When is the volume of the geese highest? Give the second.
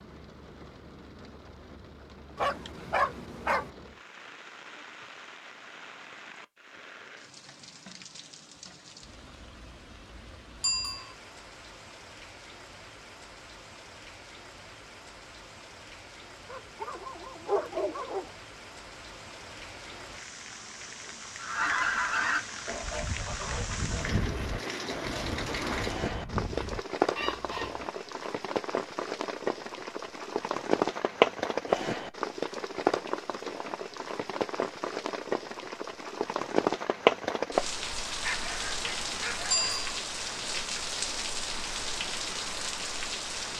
22 s.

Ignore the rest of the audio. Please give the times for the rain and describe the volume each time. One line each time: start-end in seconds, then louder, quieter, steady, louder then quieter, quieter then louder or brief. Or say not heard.
0.0-43.5 louder.